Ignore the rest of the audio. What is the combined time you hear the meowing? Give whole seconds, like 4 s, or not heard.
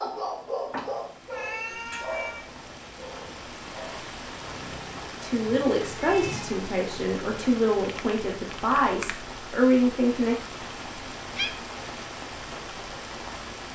4 s.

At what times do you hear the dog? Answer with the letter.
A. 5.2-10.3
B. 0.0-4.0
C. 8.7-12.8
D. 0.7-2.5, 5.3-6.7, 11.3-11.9
B.